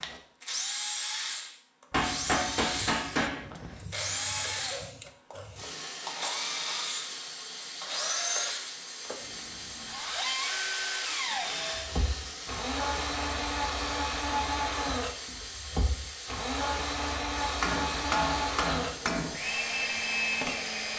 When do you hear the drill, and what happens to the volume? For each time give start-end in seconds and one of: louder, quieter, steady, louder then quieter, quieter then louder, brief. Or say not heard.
0.0-20.9 steady.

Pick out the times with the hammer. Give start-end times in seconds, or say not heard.
1.9-3.5, 17.6-19.4.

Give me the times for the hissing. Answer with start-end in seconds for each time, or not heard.
1.9-20.9.